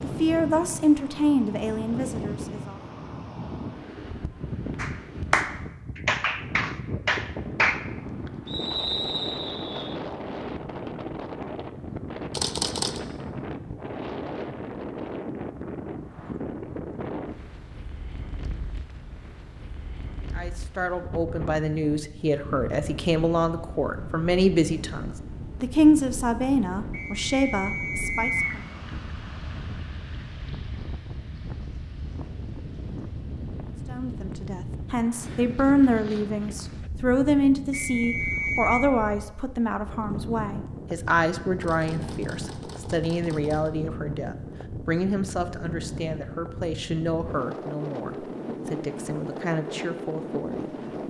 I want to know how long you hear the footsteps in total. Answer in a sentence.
The footsteps can't be heard in this clip.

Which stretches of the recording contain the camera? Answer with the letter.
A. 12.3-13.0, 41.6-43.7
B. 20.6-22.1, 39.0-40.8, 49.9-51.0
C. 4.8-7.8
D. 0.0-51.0
A.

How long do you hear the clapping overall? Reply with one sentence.
You can hear the clapping for 3 seconds altogether.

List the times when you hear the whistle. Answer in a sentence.
You can hear the whistle from 8.4 to 9.9 s, from 26.9 to 28.6 s and from 37.7 to 38.9 s.